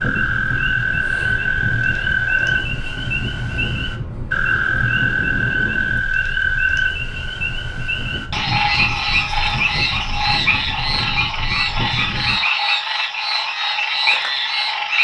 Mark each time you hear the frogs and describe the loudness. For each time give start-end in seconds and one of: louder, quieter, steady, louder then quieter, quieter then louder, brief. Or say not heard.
0.0-14.9 steady.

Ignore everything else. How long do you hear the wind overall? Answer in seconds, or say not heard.
12 s.